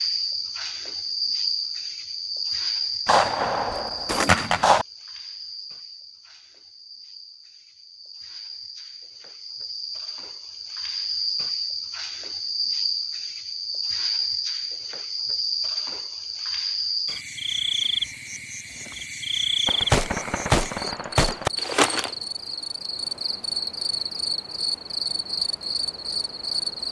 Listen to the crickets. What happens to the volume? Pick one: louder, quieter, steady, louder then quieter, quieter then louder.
quieter then louder.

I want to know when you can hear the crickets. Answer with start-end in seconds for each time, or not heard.
0.0-26.8.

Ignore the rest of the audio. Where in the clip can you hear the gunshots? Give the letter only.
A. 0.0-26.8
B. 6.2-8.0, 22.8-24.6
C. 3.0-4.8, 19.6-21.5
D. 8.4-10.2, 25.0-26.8
C.